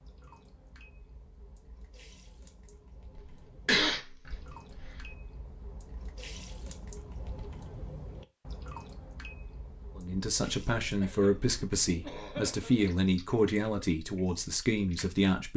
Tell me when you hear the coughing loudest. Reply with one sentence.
The loudest moment of the coughing is at 4 seconds.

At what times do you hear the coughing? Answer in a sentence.
You can hear the coughing from 3.1 to 5.2 s and from 11.0 to 12.8 s.